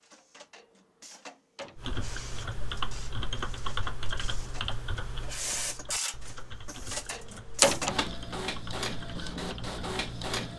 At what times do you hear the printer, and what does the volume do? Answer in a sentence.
The printer can be heard from 0.0 to 10.5 s, getting louder.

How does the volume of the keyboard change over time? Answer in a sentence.
The loudness of the keyboard goes down.